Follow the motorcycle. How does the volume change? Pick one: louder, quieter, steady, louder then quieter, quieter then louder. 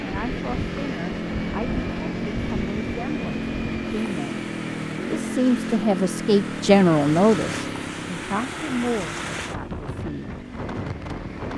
quieter.